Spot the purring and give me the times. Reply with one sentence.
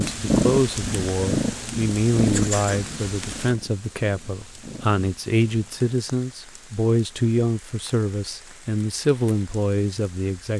The purring can be heard from 0.0 to 5.9 s.